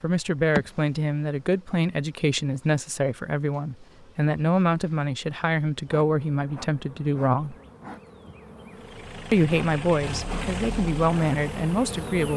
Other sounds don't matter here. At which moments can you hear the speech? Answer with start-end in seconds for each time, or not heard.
0.0-7.5, 9.3-12.3.